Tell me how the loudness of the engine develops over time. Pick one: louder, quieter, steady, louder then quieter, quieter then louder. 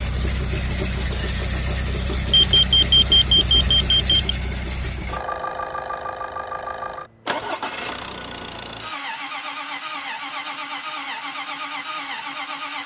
steady.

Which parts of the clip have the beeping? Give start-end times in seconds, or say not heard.
2.3-4.2.